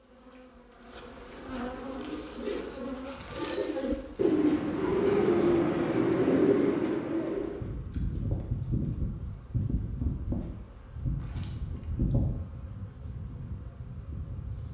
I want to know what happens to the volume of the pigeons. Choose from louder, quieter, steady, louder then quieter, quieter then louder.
louder.